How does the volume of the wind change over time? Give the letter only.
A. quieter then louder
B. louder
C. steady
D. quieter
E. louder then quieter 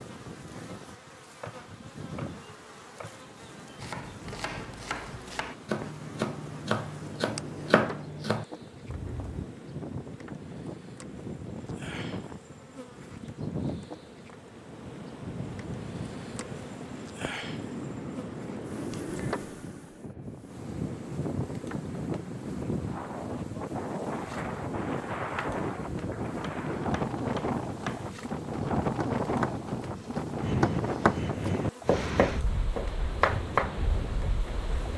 B.